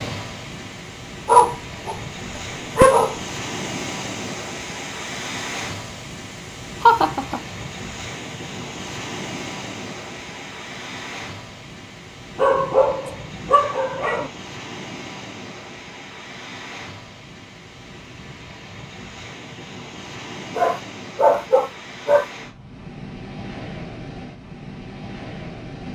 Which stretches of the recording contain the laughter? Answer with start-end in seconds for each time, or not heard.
6.8-7.4.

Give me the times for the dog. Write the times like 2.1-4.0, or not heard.
1.2-3.1, 12.3-14.3, 20.6-22.2.